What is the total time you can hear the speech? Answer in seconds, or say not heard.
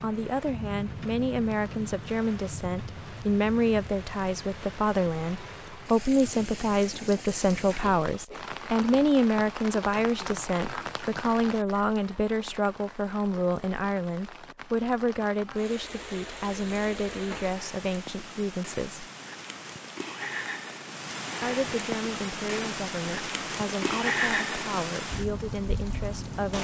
24 s.